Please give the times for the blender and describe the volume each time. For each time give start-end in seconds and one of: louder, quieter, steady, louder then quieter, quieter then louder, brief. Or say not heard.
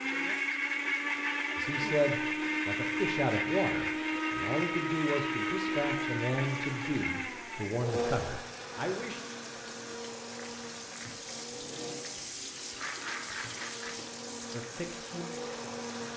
0.0-16.1 quieter.